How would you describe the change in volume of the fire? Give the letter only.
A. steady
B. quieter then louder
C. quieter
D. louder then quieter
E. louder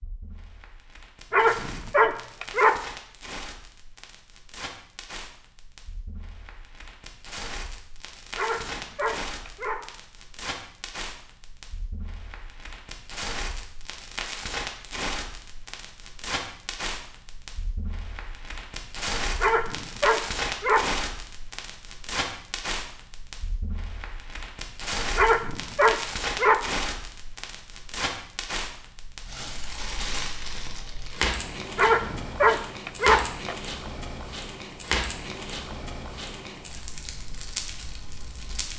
E.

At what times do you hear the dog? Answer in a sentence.
You can hear the dog from 1.3 to 2.8 s, from 8.3 to 9.8 s, from 19.4 to 20.9 s, from 25.1 to 26.6 s and from 31.8 to 33.5 s.